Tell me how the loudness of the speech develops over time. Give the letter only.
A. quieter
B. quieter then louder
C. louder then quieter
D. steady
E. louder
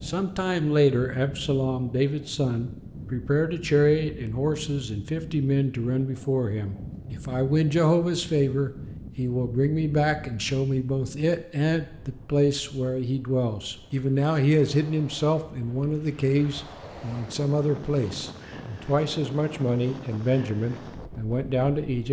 D.